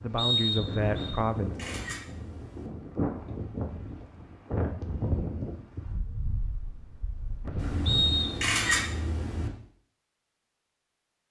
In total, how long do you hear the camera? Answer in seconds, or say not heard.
4 s.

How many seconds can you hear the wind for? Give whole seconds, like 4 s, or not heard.
8 s.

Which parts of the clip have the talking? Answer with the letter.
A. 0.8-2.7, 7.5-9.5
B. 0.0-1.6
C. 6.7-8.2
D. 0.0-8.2
B.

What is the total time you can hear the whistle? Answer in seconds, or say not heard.
2 s.